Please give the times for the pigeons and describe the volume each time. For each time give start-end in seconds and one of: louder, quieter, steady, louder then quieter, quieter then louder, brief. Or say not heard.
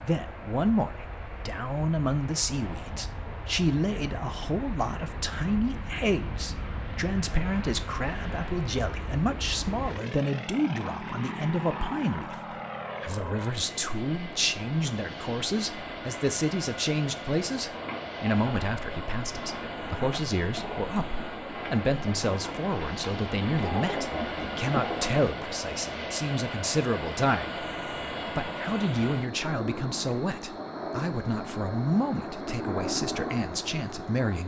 17.7-25.2 louder.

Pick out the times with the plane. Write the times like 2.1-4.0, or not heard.
0.0-34.4.